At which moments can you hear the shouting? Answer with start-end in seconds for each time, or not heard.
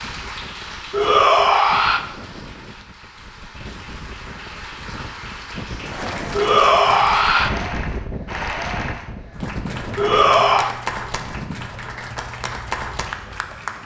0.9-2.0, 6.3-7.5, 9.9-10.8.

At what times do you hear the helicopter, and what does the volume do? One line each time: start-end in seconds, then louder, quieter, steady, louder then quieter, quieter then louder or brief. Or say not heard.
not heard.